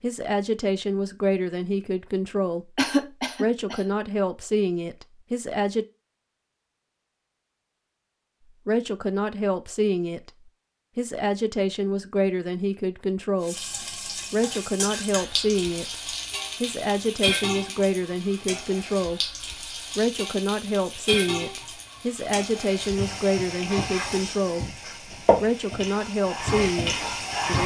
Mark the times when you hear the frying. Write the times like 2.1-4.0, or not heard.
13.4-27.6.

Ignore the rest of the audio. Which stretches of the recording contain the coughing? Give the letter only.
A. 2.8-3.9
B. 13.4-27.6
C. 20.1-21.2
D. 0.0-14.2
A.